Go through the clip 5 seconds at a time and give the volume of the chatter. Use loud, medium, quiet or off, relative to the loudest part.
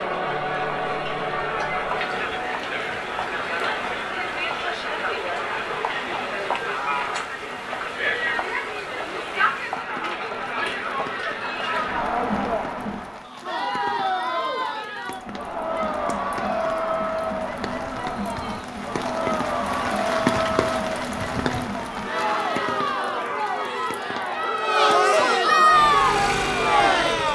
medium, medium, medium, medium, medium, loud.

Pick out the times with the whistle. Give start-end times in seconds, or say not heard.
not heard.